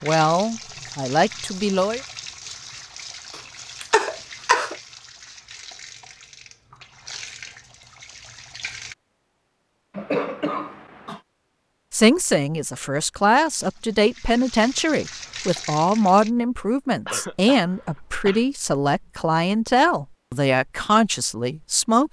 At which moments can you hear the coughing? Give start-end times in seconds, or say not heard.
3.4-4.8, 9.9-11.2, 17.1-18.4.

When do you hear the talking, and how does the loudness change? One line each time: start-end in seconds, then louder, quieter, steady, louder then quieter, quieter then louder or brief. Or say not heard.
0.0-2.0 brief
11.9-22.0 steady.